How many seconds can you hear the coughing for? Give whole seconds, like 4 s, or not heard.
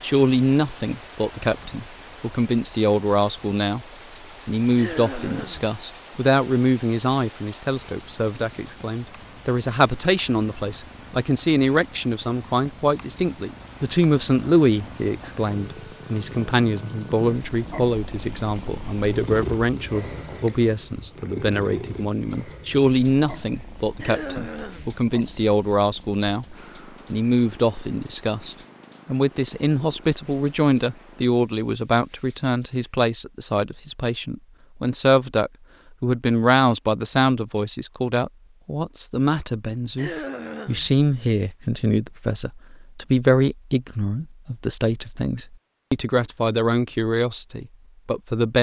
3 s.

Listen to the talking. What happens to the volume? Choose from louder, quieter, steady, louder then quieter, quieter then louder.
steady.